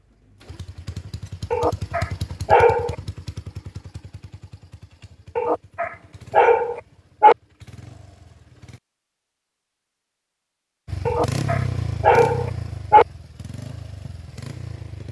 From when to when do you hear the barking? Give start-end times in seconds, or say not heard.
1.5-3.0, 5.3-7.3, 11.1-13.1.